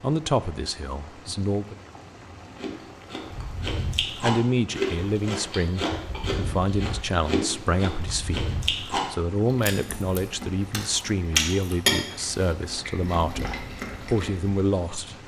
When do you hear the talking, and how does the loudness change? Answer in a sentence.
You can hear the talking briefly from 0.0 to 1.8 s; and from 4.2 to 15.2 s, at a steady volume.